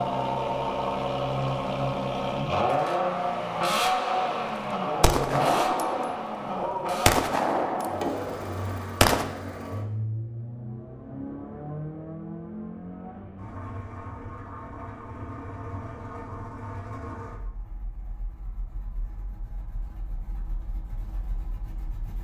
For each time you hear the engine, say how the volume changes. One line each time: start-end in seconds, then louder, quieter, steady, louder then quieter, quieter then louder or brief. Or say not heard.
0.0-22.1 quieter.